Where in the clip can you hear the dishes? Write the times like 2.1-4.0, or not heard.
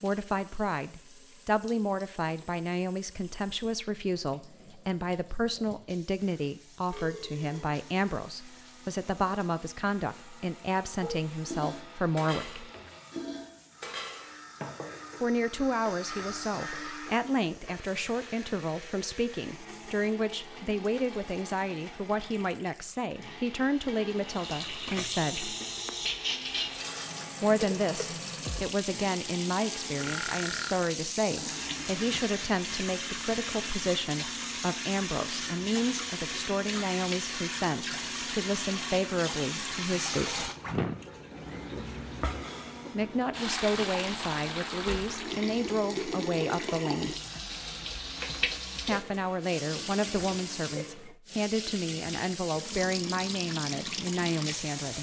11.0-17.8.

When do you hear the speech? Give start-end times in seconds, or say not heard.
0.0-12.7, 15.2-25.6, 27.4-40.5, 42.9-47.1, 48.9-54.9.